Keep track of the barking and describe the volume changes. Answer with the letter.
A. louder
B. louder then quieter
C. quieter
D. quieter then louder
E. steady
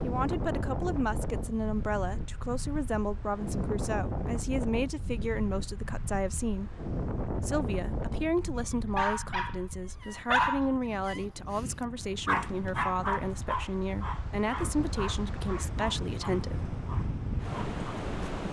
C.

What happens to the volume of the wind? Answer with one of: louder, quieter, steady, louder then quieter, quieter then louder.
quieter then louder.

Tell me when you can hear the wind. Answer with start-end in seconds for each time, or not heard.
0.0-18.4.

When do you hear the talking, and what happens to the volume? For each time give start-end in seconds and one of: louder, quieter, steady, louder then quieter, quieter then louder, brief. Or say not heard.
0.0-6.8 steady
7.4-16.7 steady.